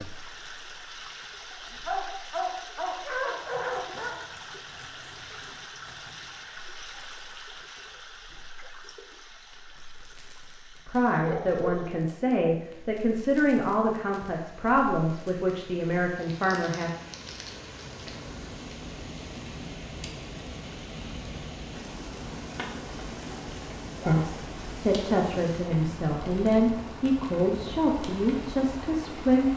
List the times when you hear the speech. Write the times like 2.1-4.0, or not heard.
10.8-16.9, 24.1-29.5.